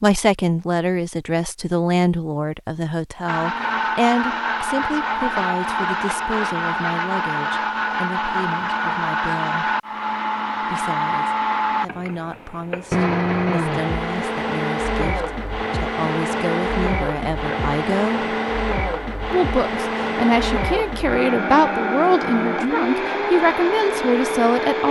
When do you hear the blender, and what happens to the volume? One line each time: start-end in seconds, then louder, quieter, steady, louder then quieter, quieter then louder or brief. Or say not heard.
3.2-24.8 steady.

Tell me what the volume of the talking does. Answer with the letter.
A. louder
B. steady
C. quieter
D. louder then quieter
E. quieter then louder
E.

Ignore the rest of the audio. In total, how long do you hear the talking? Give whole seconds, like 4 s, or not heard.
23 s.